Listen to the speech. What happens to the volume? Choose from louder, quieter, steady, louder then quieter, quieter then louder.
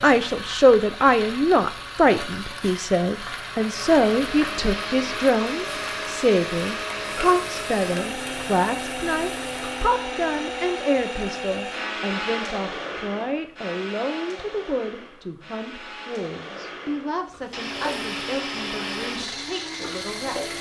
quieter.